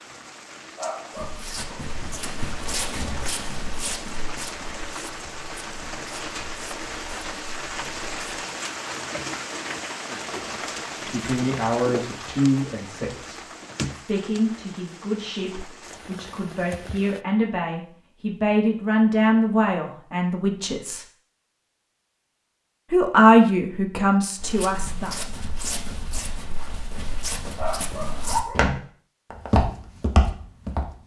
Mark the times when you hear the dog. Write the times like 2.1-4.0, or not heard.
0.8-1.9, 27.6-28.7.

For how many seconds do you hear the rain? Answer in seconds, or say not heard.
17 s.